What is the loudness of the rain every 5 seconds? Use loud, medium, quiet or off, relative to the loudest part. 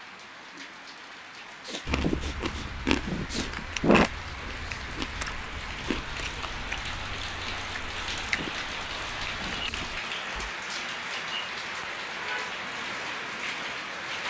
medium, loud, loud.